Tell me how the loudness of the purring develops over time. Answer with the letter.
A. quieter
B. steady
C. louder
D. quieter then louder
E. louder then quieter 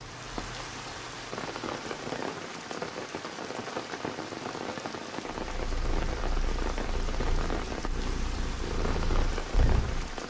C.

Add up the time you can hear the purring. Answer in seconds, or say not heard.
5 s.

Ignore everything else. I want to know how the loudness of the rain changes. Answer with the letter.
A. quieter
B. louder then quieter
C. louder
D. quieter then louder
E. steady
E.